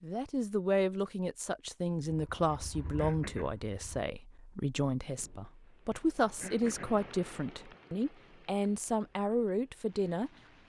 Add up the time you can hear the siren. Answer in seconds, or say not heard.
not heard.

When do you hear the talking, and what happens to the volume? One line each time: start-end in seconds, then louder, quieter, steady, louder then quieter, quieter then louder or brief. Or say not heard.
0.0-10.6 steady.